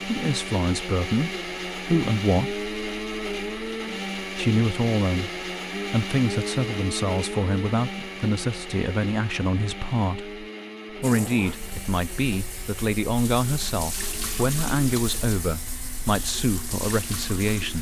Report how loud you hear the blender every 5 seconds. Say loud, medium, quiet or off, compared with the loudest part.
loud, loud, medium, quiet.